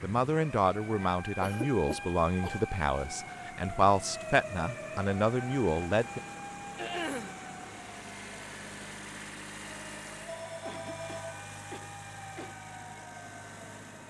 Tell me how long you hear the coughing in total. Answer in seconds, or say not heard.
4 s.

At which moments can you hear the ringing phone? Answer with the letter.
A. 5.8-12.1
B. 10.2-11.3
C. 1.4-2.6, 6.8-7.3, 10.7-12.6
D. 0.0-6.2
B.